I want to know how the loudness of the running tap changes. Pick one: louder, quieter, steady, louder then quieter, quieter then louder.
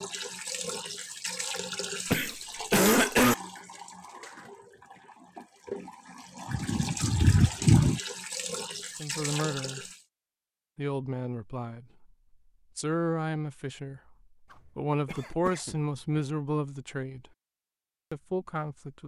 quieter then louder.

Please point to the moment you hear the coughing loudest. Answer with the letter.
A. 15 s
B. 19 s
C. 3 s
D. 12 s
C.